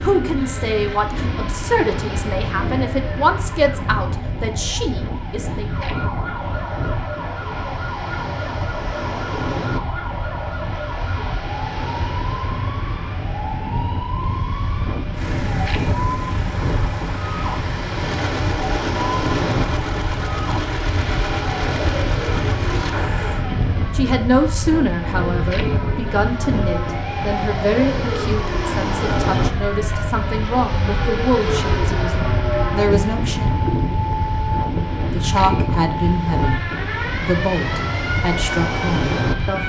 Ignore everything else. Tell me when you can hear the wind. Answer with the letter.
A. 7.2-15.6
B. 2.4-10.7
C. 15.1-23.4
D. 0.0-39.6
D.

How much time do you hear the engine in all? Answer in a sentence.
You can hear the engine for 8 seconds altogether.